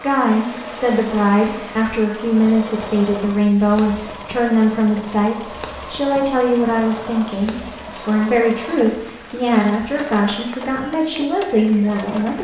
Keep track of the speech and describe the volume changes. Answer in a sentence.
The loudness of the speech stays about the same.